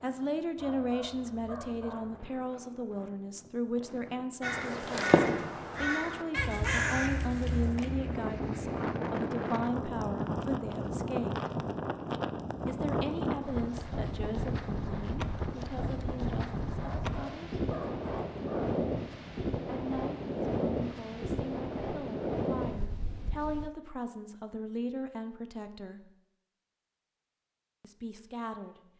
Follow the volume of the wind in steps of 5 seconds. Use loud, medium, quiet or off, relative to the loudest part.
quiet, loud, loud, loud, loud, off.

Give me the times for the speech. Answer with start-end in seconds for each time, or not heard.
0.0-11.3, 12.7-17.6, 19.7-26.1, 27.8-28.8.